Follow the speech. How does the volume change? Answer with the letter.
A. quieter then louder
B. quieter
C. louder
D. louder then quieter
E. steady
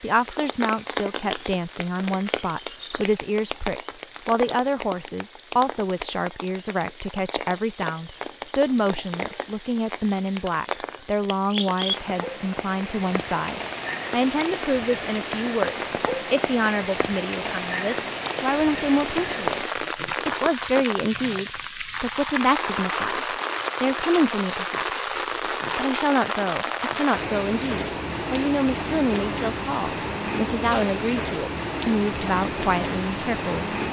E.